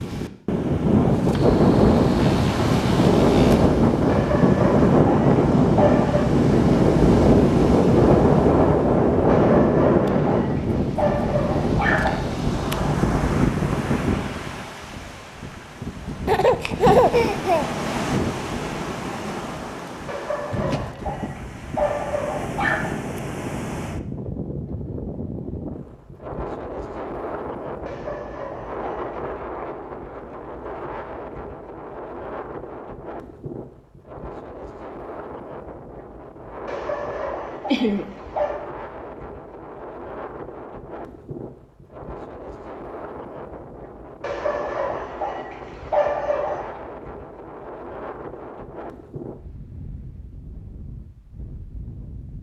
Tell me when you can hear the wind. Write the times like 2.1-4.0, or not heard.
0.0-52.3.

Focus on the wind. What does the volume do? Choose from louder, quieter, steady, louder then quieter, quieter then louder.
quieter.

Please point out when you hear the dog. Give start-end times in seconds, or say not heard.
4.0-6.3, 9.2-12.1, 20.1-22.9, 27.9-29.2, 36.6-38.6, 44.2-46.8.